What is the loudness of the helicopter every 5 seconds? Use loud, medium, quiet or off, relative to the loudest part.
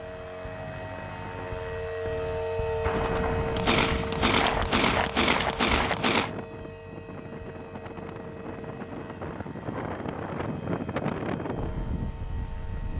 loud, medium, quiet.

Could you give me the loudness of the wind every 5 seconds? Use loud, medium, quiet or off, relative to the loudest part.
loud, medium, loud.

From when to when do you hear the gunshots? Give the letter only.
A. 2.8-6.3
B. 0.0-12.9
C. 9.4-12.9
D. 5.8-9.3
A.